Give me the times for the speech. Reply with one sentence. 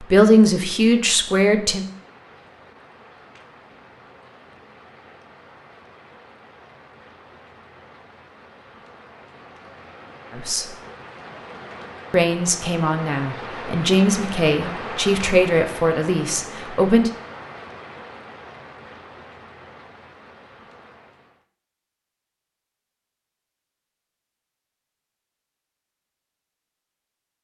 You can hear the speech from 0.0 to 1.9 s, from 10.3 to 10.8 s and from 12.1 to 17.1 s.